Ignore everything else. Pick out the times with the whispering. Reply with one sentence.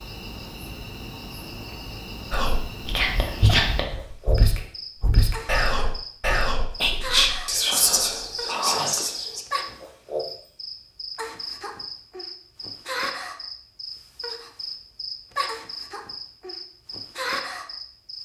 The whispering can be heard from 2.3 to 9.4 s.